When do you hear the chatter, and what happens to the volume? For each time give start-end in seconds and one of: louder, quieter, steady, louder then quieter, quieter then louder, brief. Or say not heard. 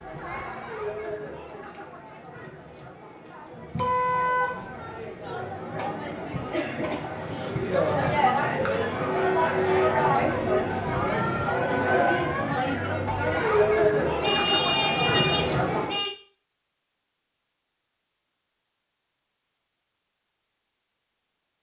0.0-16.0 louder.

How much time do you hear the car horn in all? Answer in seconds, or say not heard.
3 s.